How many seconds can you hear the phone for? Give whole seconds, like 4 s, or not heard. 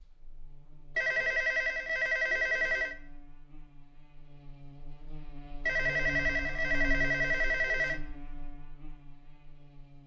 4 s.